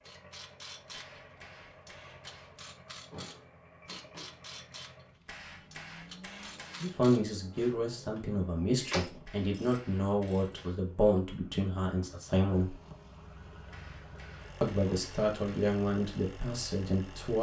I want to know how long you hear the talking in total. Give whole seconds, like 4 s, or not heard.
9 s.